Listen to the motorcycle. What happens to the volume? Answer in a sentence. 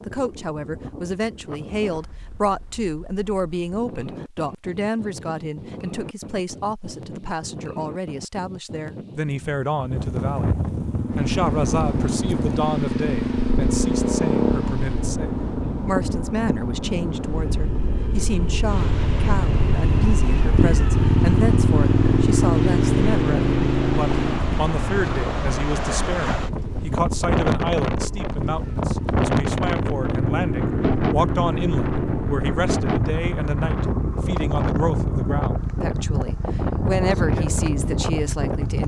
The volume of the motorcycle goes down.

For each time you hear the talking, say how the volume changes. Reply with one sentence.
The talking can be heard from 0.1 to 38.8 s, at a steady volume.